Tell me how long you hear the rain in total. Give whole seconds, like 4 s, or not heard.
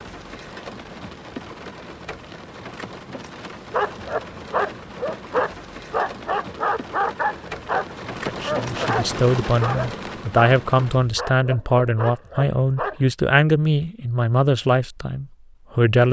11 s.